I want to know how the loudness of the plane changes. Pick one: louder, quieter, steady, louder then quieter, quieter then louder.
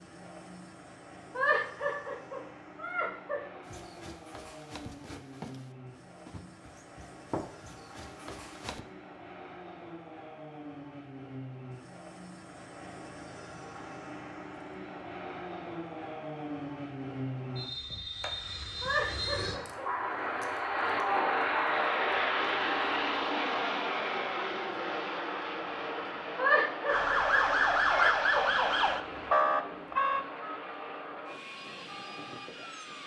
louder then quieter.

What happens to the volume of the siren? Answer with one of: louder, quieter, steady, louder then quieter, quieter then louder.
quieter.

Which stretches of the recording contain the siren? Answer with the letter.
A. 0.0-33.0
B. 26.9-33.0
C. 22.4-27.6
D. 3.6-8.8
B.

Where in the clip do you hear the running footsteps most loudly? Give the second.
7 s.